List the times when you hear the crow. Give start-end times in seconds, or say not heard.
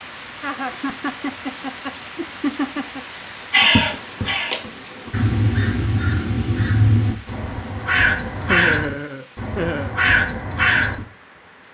3.5-11.1.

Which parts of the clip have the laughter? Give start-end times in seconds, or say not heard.
0.4-3.0, 8.4-9.9.